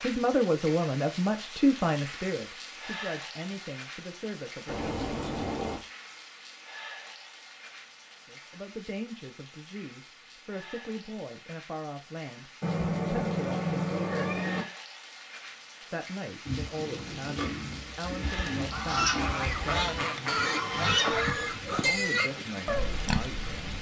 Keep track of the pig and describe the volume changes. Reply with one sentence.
The volume of the pig goes up.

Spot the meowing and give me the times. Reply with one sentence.
You can hear the meowing from 4.7 to 5.8 s and from 12.6 to 14.7 s.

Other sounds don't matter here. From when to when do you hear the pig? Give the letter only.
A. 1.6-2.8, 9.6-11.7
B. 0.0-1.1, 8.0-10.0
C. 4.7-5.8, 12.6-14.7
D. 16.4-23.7
D.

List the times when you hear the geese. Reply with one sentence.
You can hear the geese from 18.7 to 21.4 s.